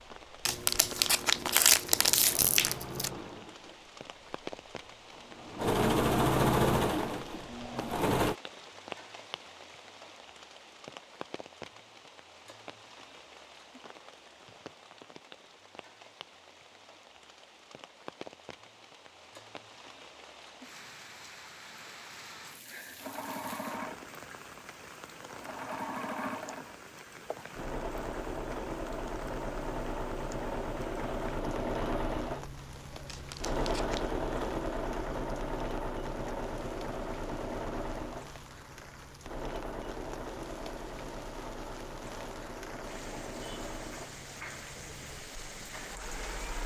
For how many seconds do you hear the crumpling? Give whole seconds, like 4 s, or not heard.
4 s.